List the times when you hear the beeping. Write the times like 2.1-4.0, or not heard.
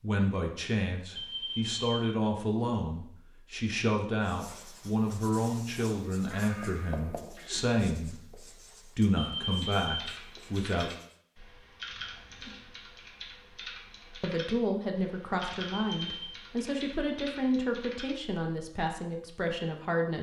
1.1-2.0, 9.2-10.1, 15.7-16.4.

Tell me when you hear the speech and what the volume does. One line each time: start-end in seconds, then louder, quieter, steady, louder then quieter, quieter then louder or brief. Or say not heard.
0.0-10.9 steady
14.2-20.1 steady.